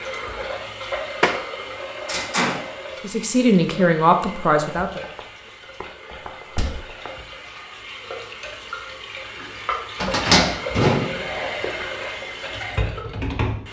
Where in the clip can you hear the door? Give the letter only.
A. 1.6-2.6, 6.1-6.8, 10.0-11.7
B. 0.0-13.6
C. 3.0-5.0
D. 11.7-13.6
A.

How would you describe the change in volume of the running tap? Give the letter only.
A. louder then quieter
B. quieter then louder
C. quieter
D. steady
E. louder
B.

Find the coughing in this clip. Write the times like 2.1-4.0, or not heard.
not heard.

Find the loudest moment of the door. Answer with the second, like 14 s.
10 s.